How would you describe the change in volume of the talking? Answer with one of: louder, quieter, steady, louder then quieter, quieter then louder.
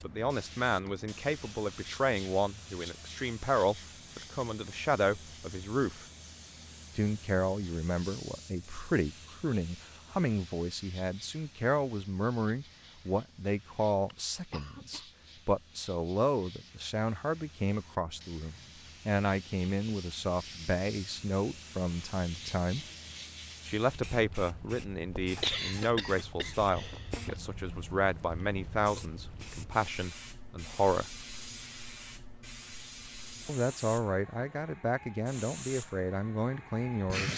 steady.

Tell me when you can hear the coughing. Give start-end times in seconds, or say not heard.
14.1-15.1, 25.1-27.4.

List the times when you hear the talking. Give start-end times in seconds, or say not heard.
0.0-6.0, 7.0-22.9, 23.6-31.1, 33.5-37.3.